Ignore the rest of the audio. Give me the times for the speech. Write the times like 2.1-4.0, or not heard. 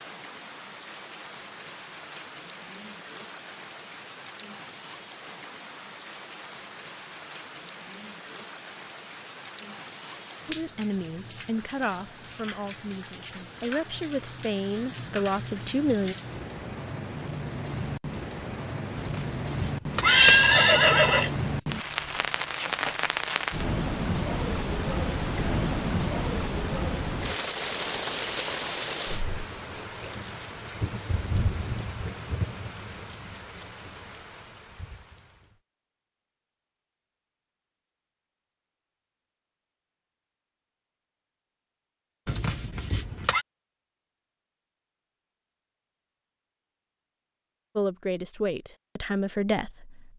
10.4-16.1, 47.8-50.1.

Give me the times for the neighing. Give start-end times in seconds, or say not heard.
18.9-21.3, 42.2-43.5.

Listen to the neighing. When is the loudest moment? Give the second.
20 s.